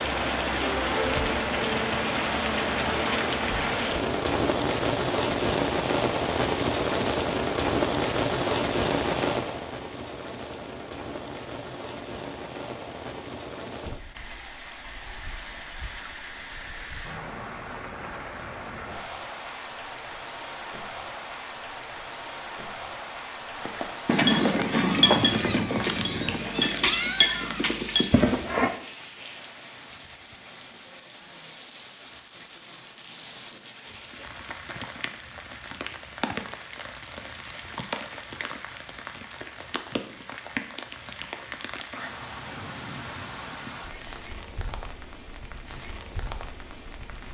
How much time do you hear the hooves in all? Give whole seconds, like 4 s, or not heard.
5 s.